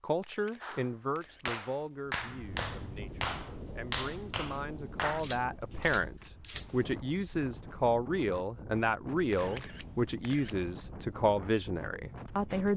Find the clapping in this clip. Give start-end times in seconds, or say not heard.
0.6-6.3.